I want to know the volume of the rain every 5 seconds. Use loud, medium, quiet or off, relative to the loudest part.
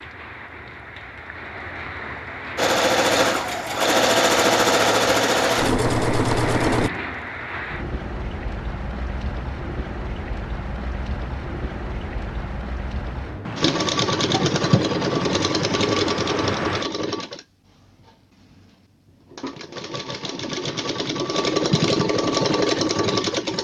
medium, loud, loud, loud, off.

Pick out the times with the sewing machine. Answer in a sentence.
You can hear the sewing machine from 2.5 to 6.9 s and from 13.6 to 23.5 s.